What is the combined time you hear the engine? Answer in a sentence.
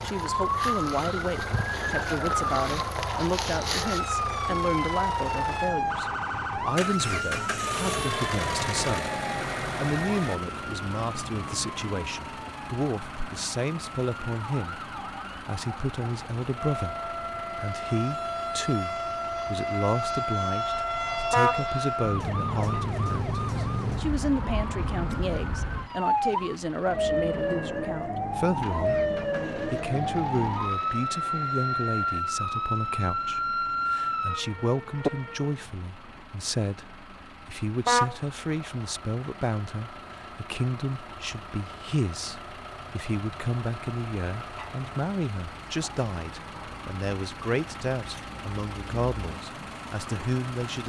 You can hear the engine for 51 seconds altogether.